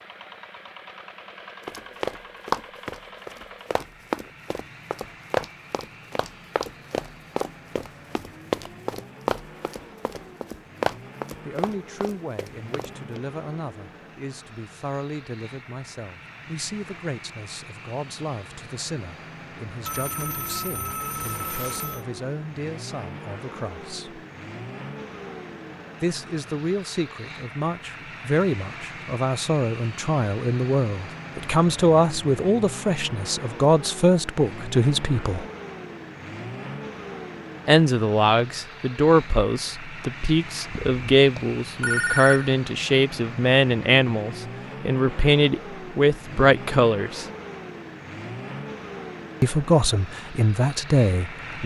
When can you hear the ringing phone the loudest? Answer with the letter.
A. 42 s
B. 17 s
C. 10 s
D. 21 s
A.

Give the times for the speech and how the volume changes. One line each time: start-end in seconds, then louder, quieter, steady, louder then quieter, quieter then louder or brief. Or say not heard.
11.4-24.2 steady
26.0-35.5 louder
37.6-47.2 steady
49.4-51.6 brief.